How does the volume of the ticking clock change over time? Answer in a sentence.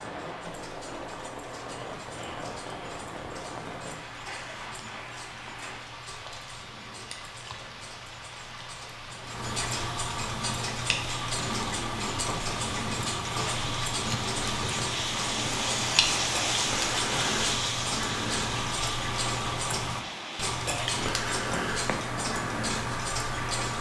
The volume of the ticking clock goes up.